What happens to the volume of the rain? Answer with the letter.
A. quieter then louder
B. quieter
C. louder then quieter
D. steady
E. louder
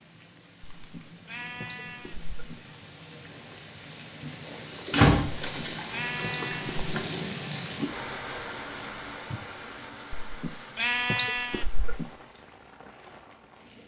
C.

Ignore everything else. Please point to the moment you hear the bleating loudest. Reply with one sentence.
The loudest moment of the bleating is at 11 seconds.